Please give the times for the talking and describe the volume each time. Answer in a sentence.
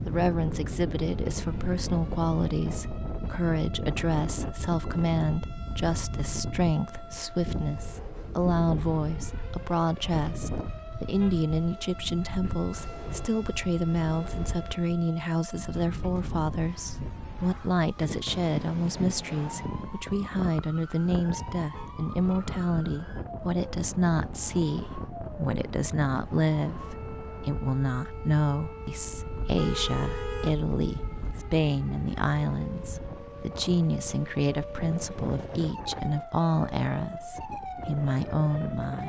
You can hear the talking from 0.1 to 39.0 s, at a steady volume.